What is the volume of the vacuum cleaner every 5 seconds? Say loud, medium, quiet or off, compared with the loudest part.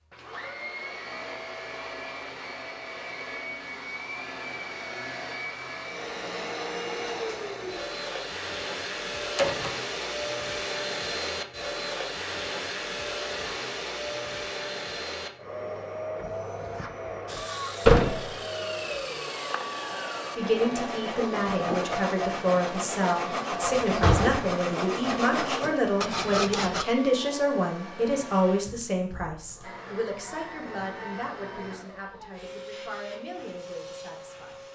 medium, loud, loud, loud, medium, medium, medium.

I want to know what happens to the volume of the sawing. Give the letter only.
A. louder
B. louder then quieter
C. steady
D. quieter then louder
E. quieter
A.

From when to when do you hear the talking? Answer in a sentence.
You can hear the talking from 20.4 to 34.6 s.